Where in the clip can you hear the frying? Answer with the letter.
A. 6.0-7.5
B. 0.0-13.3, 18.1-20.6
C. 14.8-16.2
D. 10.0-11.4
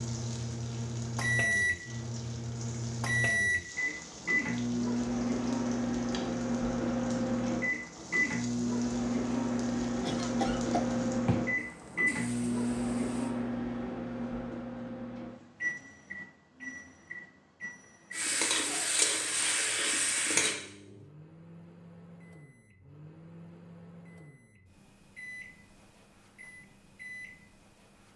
B.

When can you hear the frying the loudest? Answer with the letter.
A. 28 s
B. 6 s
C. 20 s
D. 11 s
C.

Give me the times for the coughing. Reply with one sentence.
The coughing can be heard from 10.0 to 11.4 s.